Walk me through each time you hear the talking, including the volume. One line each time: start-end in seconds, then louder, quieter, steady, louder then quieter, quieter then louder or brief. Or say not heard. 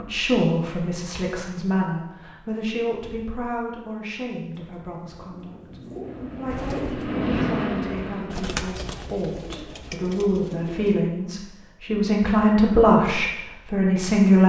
0.0-14.4 quieter then louder.